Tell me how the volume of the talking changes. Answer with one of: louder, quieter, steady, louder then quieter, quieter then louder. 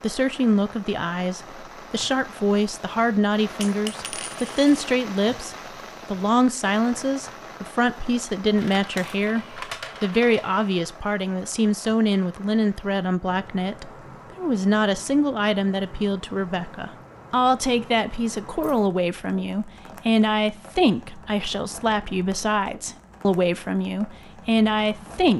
steady.